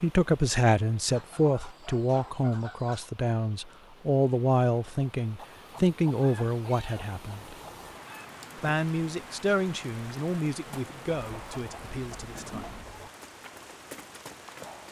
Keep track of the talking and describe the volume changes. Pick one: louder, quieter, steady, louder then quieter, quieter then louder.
quieter.